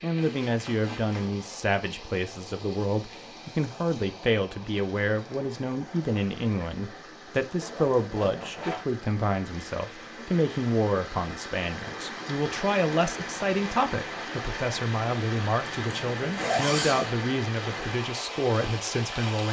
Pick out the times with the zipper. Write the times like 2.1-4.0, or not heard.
0.1-1.3, 7.5-8.8, 15.7-17.1.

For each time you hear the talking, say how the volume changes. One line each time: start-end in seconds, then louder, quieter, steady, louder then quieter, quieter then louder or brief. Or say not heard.
0.0-19.4 steady.